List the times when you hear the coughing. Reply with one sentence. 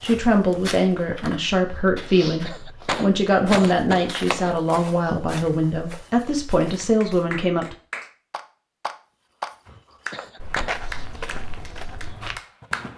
The coughing can be heard from 2.4 to 4.5 s and from 10.1 to 10.7 s.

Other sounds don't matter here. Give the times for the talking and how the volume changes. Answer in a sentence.
You can hear the talking from 0.0 to 7.8 s, at a steady volume.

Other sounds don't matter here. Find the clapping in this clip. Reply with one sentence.
You can hear the clapping from 6.8 to 12.9 s.